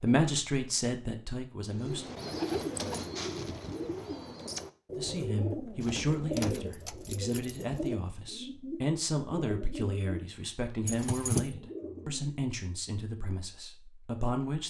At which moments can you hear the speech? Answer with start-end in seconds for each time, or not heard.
0.0-2.1, 5.0-14.6.